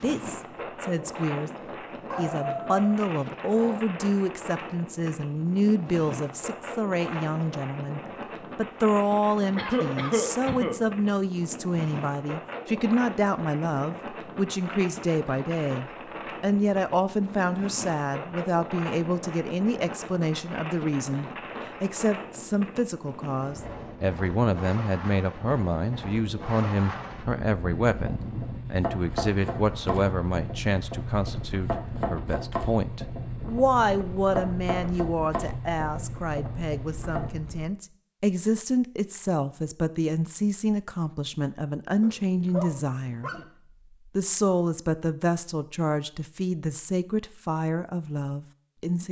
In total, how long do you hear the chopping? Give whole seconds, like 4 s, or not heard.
10 s.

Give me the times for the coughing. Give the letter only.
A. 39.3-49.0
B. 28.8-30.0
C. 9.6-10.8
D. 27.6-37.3
C.